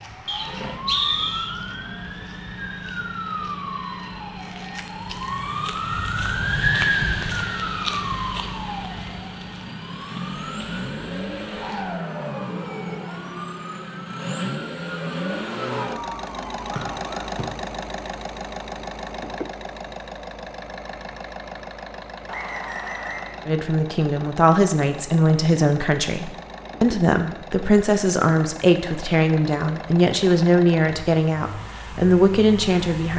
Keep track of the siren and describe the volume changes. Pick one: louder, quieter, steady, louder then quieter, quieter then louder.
louder then quieter.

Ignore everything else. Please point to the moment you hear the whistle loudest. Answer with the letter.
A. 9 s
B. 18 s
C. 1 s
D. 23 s
C.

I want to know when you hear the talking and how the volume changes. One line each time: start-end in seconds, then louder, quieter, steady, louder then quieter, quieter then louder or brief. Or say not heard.
23.4-33.1 steady.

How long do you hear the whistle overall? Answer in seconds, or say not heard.
3 s.